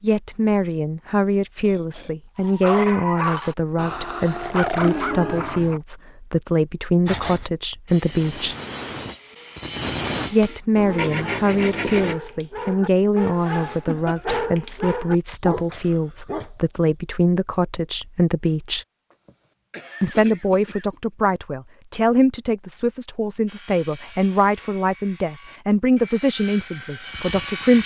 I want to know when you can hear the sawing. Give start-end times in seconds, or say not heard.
7.0-12.2, 23.4-27.8.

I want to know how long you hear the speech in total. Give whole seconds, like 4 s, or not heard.
25 s.